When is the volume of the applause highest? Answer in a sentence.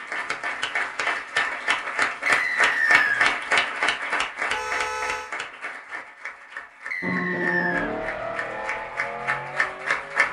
The volume of the applause peaks at 3 seconds.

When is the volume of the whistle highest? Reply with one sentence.
The volume of the whistle peaks at 3 seconds.